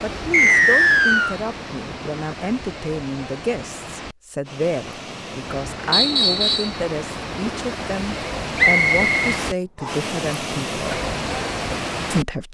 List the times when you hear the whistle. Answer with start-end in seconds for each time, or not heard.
0.3-1.4, 5.9-6.8, 8.6-10.1.